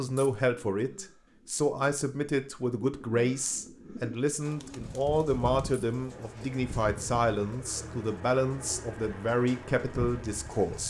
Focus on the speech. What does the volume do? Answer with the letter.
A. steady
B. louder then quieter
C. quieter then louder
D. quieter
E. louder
A.